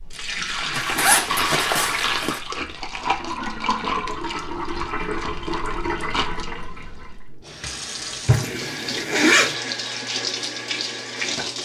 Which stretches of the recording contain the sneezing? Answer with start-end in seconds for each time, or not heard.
not heard.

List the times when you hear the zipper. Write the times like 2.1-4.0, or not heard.
0.7-2.4, 8.3-9.6.